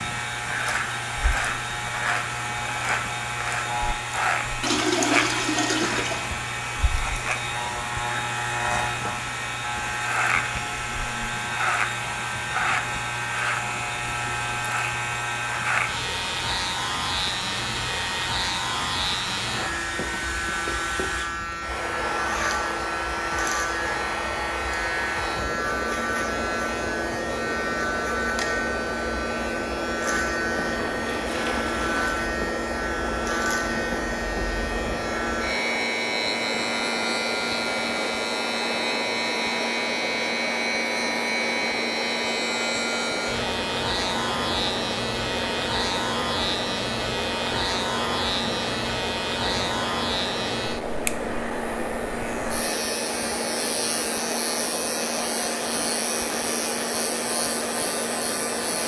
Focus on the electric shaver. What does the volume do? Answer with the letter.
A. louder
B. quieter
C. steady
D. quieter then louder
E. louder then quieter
C.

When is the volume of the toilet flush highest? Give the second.
5 s.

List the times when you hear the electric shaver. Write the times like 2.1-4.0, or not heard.
0.0-58.8.